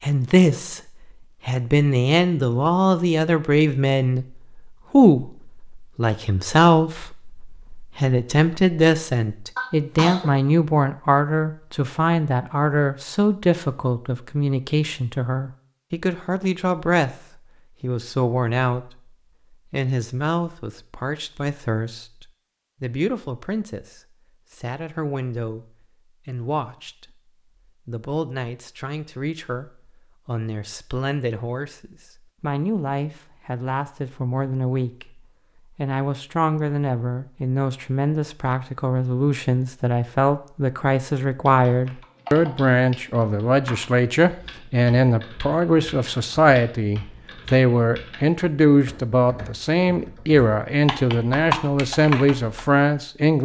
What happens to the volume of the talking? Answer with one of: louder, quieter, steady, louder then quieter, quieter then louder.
quieter then louder.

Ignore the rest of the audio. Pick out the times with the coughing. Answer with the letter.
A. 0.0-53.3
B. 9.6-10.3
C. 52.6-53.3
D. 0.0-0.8
B.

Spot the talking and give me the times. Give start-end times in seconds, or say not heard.
0.0-53.3.